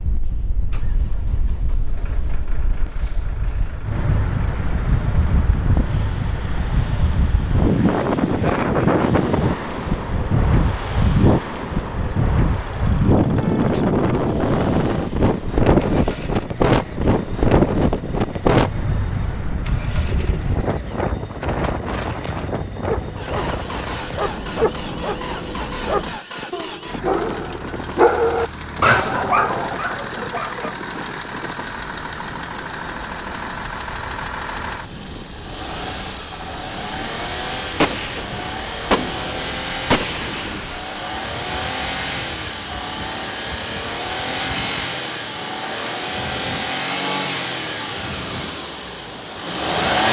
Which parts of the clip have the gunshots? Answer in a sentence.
The gunshots can be heard from 20.1 to 20.6 s and from 37.8 to 40.9 s.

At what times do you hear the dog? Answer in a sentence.
You can hear the dog from 22.8 to 30.8 s.